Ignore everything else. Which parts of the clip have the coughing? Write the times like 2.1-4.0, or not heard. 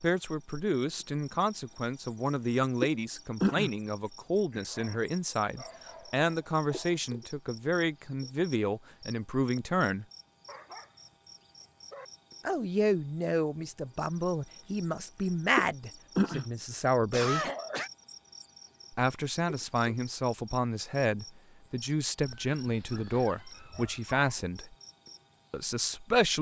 4.0-4.9, 17.1-17.9.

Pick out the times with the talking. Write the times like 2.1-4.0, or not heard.
0.0-10.1, 12.4-17.4, 18.9-24.8, 25.5-26.3.